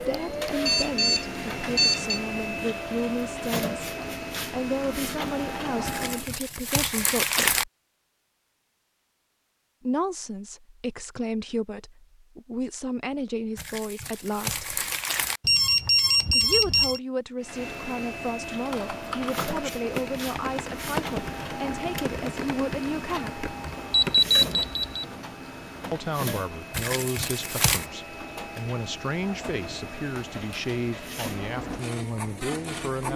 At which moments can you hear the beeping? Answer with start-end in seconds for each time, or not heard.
0.7-2.2, 15.4-17.0, 23.9-25.1.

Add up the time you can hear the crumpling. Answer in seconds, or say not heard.
5 s.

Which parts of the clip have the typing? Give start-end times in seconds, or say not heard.
18.6-24.4.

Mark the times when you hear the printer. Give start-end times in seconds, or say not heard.
0.0-6.3, 17.4-33.1.